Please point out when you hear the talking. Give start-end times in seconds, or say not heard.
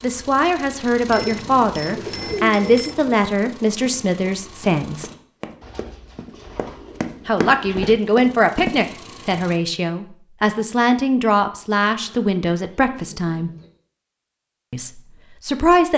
0.0-5.1, 7.2-13.5, 14.7-15.9.